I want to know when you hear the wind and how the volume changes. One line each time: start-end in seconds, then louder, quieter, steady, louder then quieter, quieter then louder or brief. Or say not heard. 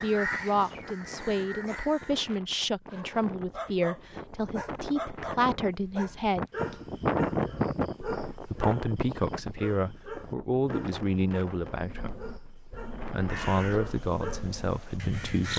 0.0-15.5 louder then quieter.